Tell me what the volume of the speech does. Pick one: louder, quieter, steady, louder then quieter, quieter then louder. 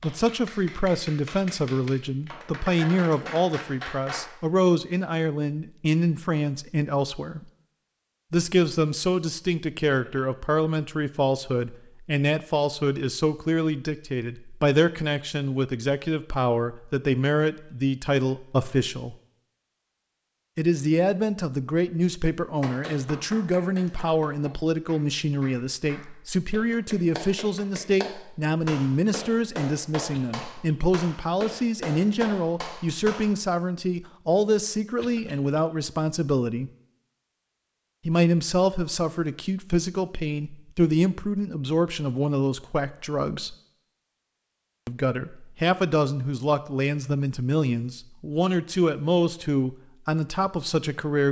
steady.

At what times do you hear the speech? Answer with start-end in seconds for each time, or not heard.
0.0-7.5, 8.3-19.1, 20.6-36.7, 38.0-43.5, 44.9-51.2.